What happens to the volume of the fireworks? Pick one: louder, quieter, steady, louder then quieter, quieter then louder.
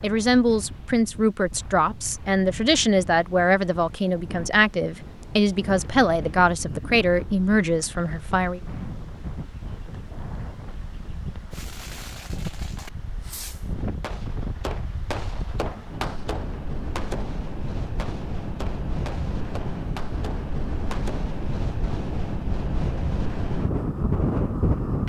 louder then quieter.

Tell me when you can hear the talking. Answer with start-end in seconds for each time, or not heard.
0.0-8.6.